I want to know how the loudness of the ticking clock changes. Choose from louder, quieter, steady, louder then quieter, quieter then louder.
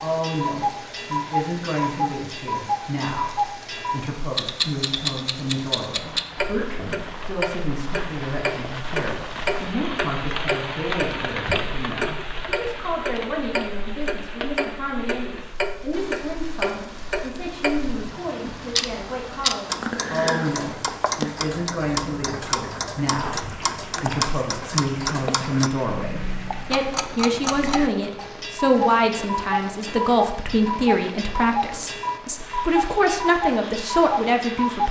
steady.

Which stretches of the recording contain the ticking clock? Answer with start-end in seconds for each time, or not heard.
0.0-34.8.